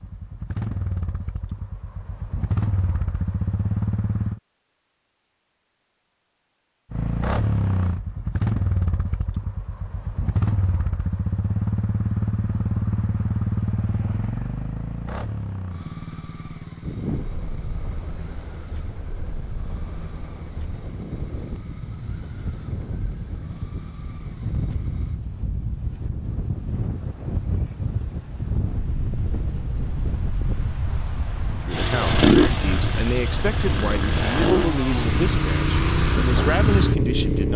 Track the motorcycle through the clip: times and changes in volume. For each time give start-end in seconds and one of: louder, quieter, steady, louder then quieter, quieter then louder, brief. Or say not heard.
0.0-4.4 quieter then louder
6.9-25.2 quieter
31.7-37.5 quieter then louder.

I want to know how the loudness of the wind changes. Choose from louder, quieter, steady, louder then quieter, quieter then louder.
louder.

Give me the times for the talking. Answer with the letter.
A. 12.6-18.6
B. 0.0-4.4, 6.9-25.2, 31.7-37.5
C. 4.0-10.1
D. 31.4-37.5
D.